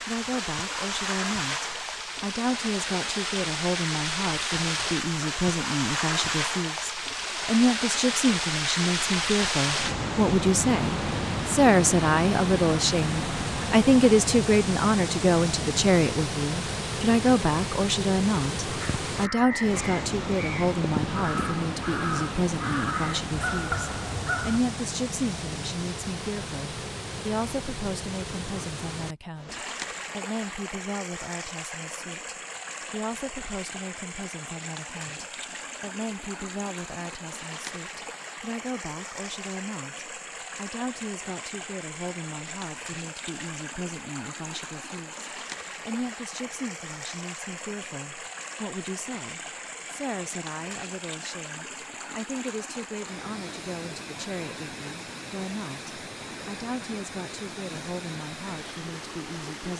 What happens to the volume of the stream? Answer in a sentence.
The volume of the stream goes down.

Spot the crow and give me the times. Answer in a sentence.
The crow can be heard from 18.8 to 24.6 s.